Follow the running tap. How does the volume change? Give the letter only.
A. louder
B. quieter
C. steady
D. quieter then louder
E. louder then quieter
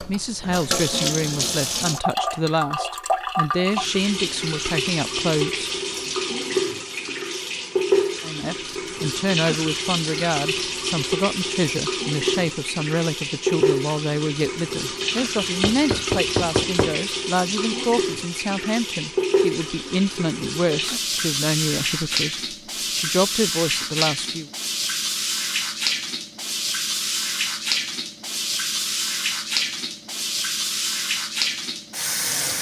C.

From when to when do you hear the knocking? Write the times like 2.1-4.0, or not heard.
15.6-17.0.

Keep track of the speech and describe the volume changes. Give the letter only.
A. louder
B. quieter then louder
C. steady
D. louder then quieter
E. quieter
C.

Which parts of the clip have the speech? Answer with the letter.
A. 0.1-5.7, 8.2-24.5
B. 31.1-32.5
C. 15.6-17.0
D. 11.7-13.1
A.